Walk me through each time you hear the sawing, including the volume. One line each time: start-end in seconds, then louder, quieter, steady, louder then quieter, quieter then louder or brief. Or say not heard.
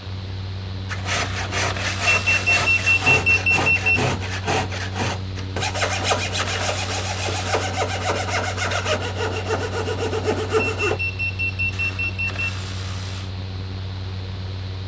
0.8-11.0 steady.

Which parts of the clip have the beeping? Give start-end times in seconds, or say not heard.
2.0-4.0, 10.8-12.4.